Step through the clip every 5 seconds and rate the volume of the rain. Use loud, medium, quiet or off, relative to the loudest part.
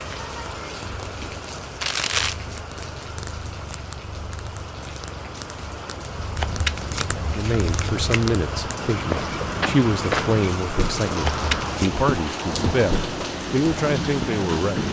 medium, medium, loud.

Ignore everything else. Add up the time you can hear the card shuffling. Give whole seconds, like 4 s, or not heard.
3 s.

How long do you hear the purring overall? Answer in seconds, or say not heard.
9 s.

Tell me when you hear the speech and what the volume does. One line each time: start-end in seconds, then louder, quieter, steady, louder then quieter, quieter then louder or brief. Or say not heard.
7.1-14.8 steady.